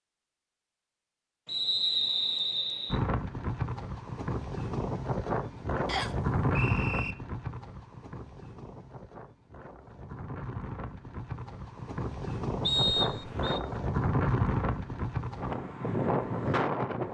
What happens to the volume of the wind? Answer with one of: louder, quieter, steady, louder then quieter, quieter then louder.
quieter then louder.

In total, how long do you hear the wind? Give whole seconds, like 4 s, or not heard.
14 s.